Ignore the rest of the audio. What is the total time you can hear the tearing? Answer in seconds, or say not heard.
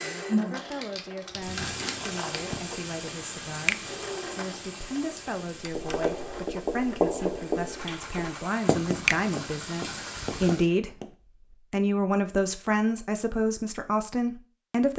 2 s.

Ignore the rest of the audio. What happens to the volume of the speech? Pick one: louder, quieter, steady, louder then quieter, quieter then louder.
louder.